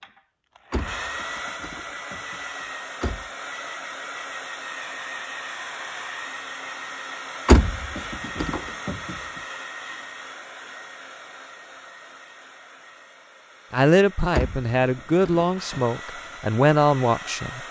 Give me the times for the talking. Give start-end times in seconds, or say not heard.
13.7-17.6.